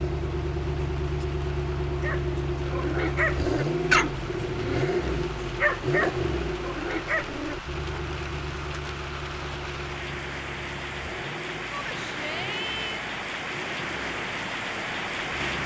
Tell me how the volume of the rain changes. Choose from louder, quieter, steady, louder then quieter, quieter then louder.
louder.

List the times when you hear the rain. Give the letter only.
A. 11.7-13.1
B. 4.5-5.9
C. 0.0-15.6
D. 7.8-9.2
C.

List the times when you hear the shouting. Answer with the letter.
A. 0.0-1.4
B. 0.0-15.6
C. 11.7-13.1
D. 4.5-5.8
C.